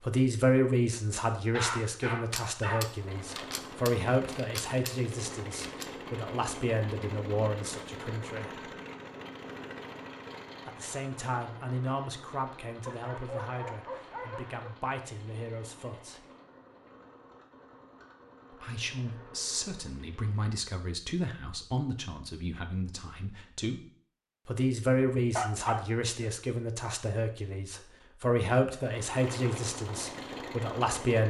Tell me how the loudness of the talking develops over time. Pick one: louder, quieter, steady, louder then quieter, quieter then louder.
quieter then louder.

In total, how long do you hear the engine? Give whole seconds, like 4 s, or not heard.
20 s.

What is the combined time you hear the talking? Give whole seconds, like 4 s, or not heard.
26 s.